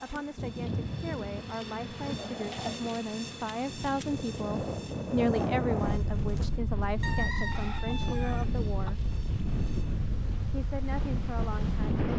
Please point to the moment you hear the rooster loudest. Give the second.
7 s.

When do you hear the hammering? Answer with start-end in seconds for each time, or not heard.
not heard.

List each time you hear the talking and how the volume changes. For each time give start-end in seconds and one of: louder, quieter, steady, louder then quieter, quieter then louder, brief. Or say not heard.
0.0-9.1 louder then quieter
10.5-12.0 brief.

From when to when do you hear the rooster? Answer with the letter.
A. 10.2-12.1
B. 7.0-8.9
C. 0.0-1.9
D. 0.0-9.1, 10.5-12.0
B.